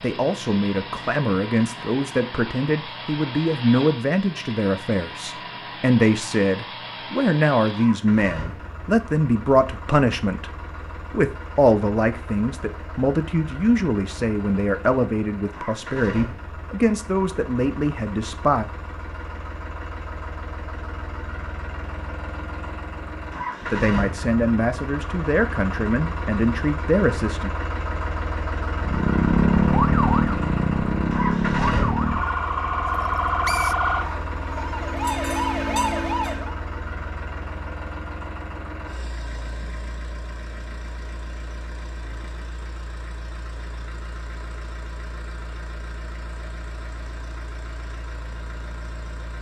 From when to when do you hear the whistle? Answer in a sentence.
You can hear the whistle from 33.0 to 33.8 s.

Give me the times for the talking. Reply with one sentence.
The talking can be heard from 0.0 to 18.6 s and from 23.7 to 27.5 s.